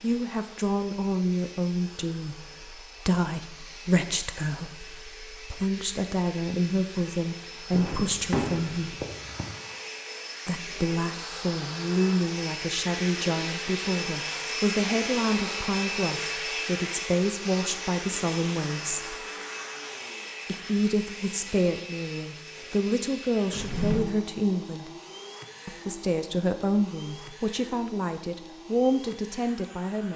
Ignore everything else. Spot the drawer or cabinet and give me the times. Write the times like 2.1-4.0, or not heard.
7.7-9.4, 23.5-24.0.